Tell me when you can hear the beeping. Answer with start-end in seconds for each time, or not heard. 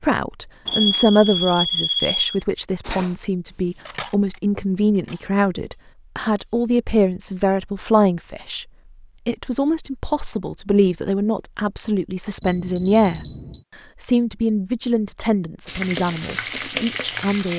0.7-2.4, 12.4-13.7.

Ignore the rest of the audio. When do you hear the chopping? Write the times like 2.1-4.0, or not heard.
not heard.